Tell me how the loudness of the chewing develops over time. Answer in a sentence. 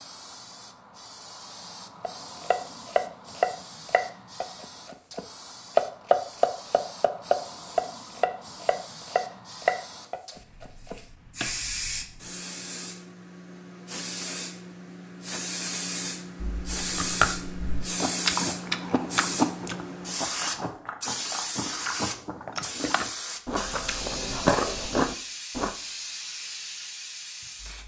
The loudness of the chewing goes down, then up.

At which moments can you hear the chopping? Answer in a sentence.
You can hear the chopping from 2.0 to 11.5 s.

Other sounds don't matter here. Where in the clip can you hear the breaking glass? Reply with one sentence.
You can't hear the breaking glass here.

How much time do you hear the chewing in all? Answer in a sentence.
The chewing can be heard for 9 seconds in total.